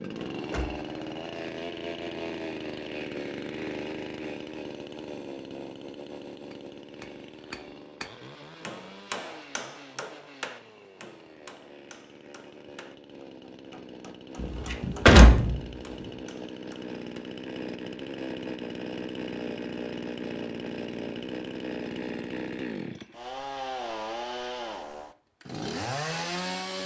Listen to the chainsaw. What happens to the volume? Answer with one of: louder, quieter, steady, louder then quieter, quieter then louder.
quieter then louder.